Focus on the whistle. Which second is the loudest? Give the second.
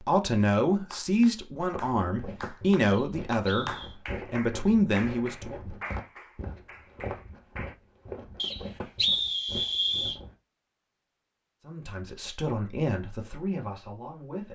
9 s.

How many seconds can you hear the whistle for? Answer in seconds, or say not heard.
3 s.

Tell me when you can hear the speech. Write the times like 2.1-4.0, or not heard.
0.0-5.6, 11.7-14.5.